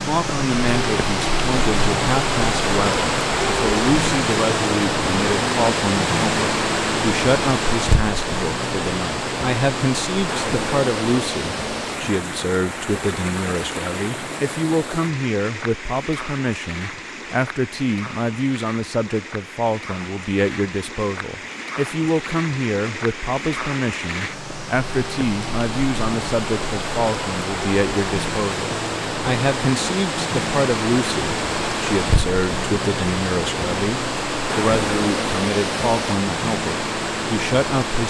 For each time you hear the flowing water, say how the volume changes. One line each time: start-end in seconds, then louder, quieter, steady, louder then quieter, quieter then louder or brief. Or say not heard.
0.0-38.0 quieter then louder.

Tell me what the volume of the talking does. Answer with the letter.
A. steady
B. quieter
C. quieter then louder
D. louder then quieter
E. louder
A.